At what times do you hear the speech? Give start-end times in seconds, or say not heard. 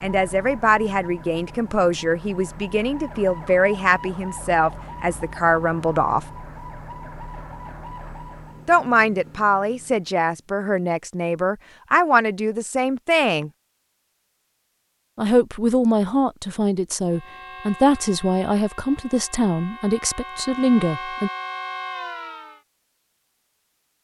0.0-6.2, 8.7-13.5, 15.2-21.3.